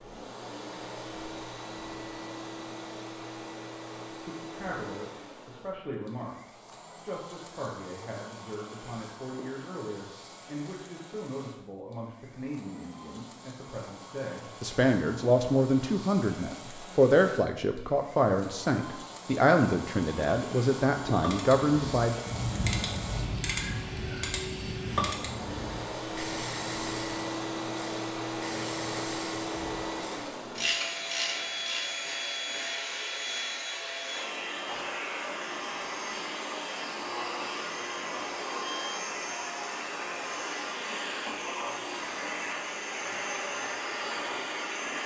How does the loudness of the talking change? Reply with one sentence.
The volume of the talking goes up.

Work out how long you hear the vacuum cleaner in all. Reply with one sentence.
The vacuum cleaner can be heard for 45 seconds in total.